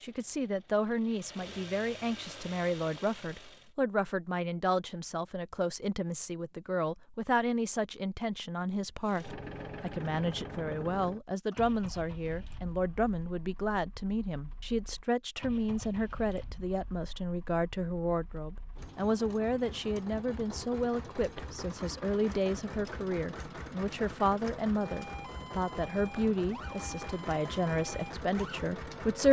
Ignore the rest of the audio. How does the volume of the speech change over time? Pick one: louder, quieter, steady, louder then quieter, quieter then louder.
steady.